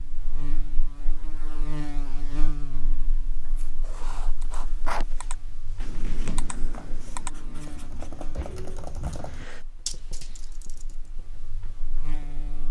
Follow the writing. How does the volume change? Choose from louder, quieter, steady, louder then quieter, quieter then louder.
quieter.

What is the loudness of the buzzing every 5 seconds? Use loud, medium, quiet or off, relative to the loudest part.
loud, medium, medium.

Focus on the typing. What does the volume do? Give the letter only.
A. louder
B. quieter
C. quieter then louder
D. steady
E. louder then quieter
A.